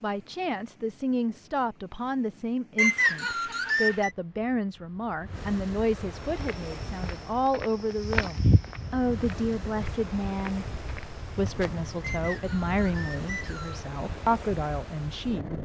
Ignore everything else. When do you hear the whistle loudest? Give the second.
3 s.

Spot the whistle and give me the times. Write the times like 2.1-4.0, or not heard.
2.8-4.1, 12.0-13.8.